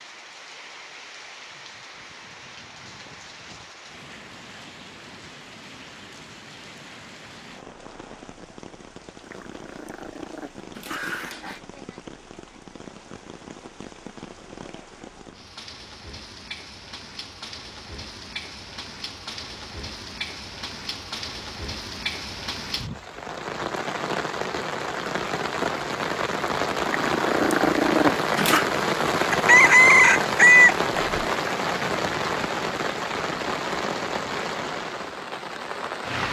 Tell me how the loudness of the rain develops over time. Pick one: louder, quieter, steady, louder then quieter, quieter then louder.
louder.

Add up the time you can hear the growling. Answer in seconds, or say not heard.
4 s.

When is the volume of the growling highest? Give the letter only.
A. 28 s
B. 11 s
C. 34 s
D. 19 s
A.